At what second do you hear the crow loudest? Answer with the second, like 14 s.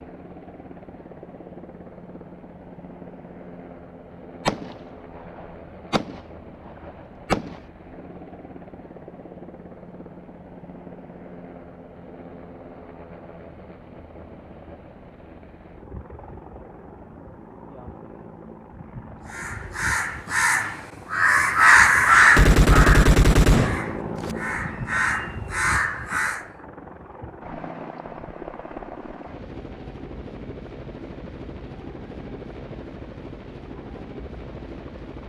22 s.